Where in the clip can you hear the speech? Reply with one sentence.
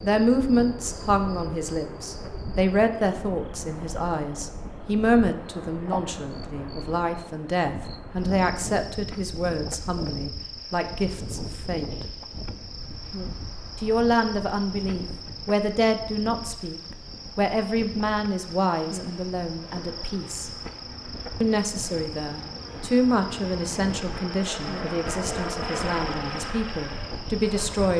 You can hear the speech from 0.0 to 12.1 s, from 13.8 to 20.5 s and from 21.4 to 27.9 s.